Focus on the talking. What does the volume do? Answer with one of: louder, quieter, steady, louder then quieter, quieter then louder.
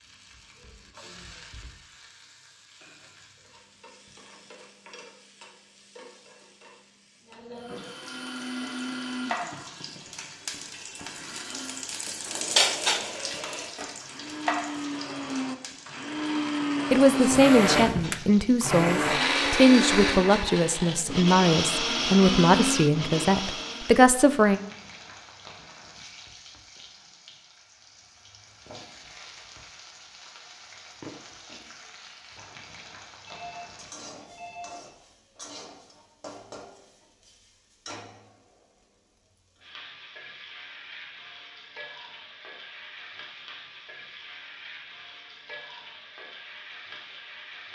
steady.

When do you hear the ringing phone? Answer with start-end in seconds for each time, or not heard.
33.2-34.8.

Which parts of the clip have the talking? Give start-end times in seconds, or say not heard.
16.9-24.6.